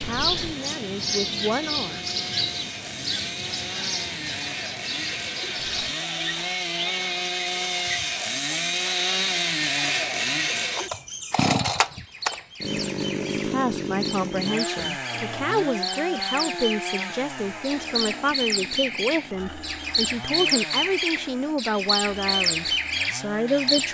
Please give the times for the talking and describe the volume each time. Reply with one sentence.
You can hear the talking briefly from 0.1 to 2.0 s; and from 13.4 to 23.8 s, at a steady volume.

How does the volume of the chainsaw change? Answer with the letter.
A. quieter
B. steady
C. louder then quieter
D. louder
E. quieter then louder
C.